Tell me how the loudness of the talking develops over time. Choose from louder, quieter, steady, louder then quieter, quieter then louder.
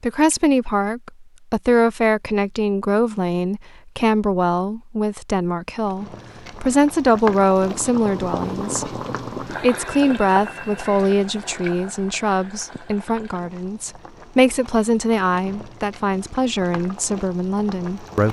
steady.